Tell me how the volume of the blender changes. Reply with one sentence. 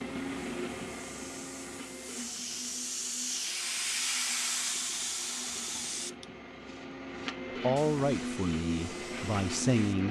The loudness of the blender goes down, then up.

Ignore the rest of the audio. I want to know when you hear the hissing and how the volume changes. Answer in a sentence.
The hissing can be heard from 0.0 to 10.0 s, getting louder then quieter.